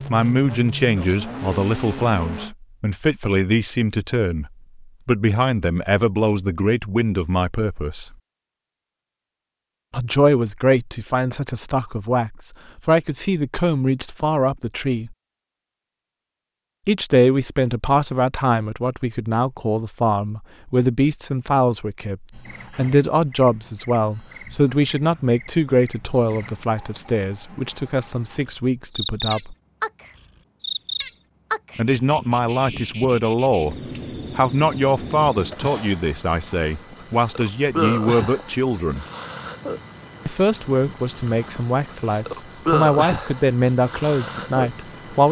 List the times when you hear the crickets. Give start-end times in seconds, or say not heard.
22.3-45.2.